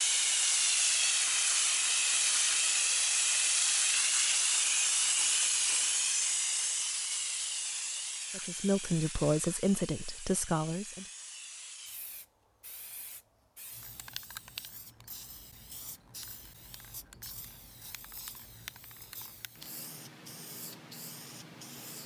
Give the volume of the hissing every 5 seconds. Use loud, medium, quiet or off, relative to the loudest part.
loud, medium, quiet, quiet, quiet.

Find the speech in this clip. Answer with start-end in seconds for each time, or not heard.
8.3-11.1.